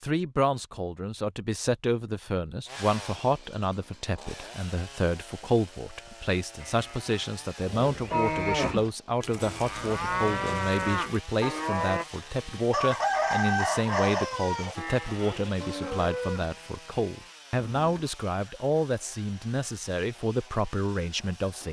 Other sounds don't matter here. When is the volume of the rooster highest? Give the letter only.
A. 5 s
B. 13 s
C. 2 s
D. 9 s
B.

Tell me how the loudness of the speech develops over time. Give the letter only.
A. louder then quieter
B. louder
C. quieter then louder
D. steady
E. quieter
D.